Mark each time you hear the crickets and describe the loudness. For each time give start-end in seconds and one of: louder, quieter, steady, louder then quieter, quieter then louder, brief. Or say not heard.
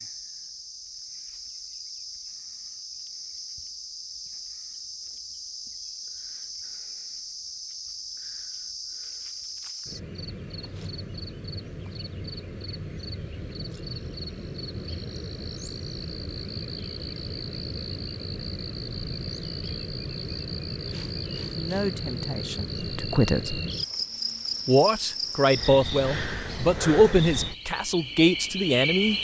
0.0-29.1 louder.